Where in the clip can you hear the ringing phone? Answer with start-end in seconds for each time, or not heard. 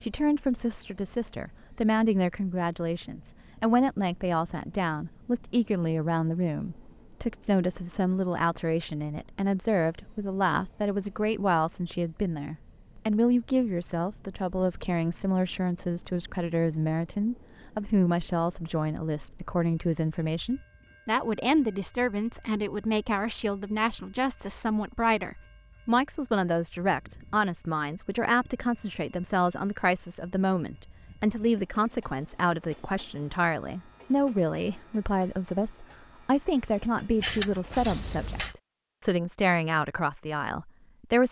37.2-38.5.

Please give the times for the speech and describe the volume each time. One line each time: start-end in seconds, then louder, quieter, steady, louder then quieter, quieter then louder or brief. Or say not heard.
0.0-41.2 steady.